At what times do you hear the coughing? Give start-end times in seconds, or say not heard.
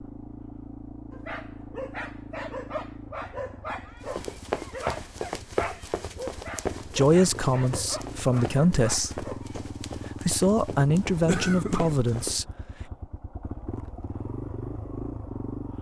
11.1-12.3.